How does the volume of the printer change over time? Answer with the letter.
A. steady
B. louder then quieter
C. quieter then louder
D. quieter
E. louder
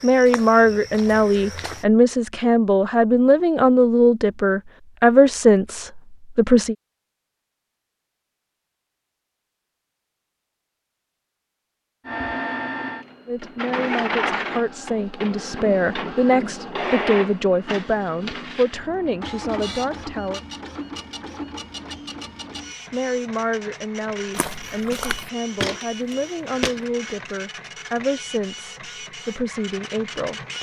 D.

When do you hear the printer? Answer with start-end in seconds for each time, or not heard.
12.1-30.5.